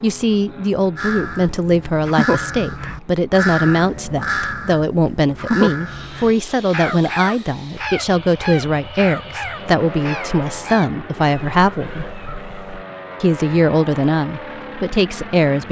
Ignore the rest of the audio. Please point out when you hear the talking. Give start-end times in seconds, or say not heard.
0.0-12.1, 13.2-15.6.